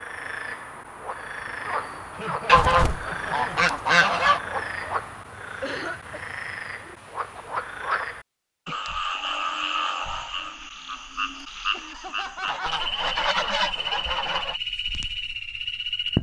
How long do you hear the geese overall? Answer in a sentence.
The geese can be heard for 4 seconds in total.